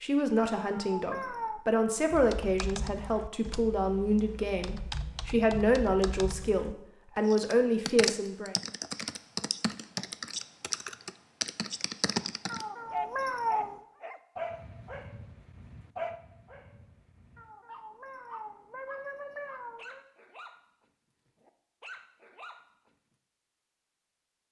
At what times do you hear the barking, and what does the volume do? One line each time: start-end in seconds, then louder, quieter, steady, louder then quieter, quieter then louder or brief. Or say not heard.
12.9-20.6 quieter
21.2-22.9 brief.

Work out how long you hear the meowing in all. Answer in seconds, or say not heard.
5 s.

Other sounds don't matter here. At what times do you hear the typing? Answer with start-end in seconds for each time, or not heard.
2.1-12.7.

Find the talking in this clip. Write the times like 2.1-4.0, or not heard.
0.0-8.6.